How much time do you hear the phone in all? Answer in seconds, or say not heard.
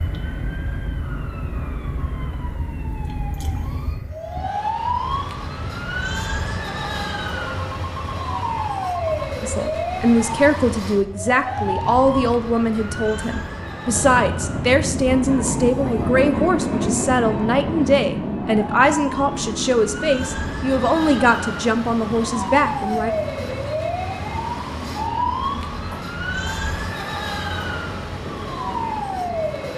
2 s.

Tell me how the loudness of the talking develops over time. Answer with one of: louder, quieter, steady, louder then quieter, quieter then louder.
steady.